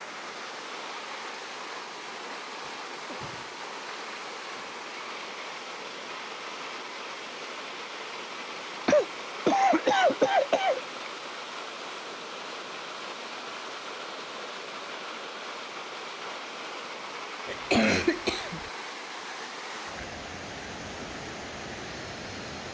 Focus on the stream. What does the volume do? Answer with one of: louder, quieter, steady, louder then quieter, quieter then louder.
steady.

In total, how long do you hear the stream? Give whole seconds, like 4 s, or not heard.
23 s.